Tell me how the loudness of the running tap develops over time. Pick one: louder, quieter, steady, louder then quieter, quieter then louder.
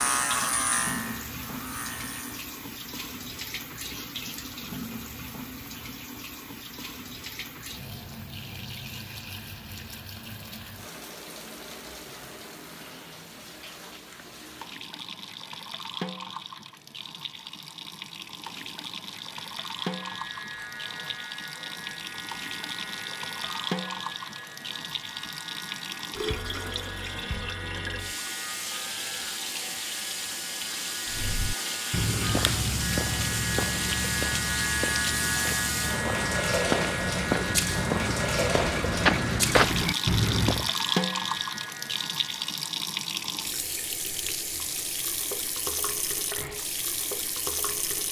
louder.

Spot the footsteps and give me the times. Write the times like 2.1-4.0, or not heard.
31.1-40.7.